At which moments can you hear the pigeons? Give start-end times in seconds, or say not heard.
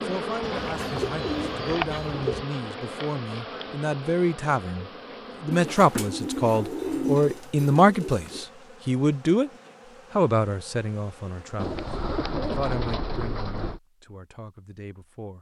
0.4-2.5, 5.5-8.4, 11.6-13.8.